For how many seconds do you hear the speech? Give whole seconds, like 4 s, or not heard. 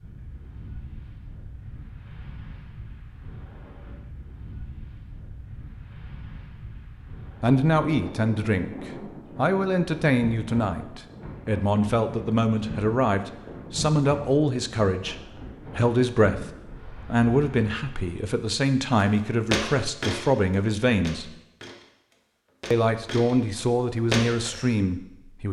16 s.